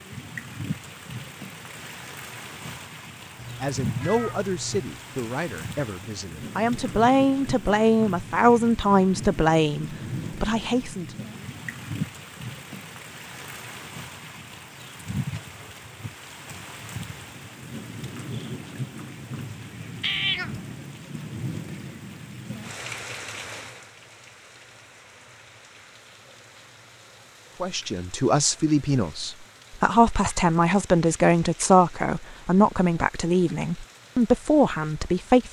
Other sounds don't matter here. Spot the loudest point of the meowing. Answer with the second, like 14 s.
20 s.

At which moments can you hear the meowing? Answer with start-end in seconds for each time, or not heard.
3.4-5.0, 20.0-20.5, 30.1-30.5.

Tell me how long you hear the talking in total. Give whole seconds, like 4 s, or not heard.
15 s.